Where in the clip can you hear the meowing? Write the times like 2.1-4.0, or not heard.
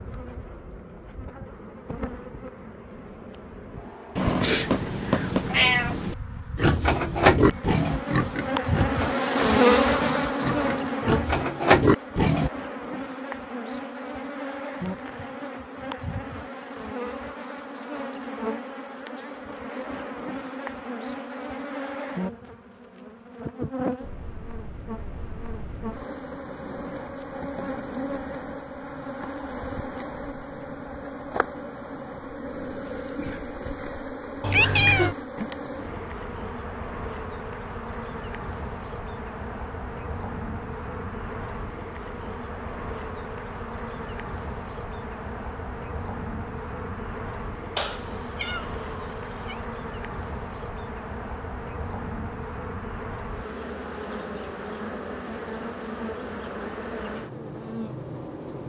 4.2-6.2, 34.4-35.1, 47.8-49.5.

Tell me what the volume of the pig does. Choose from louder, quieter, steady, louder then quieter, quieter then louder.
quieter then louder.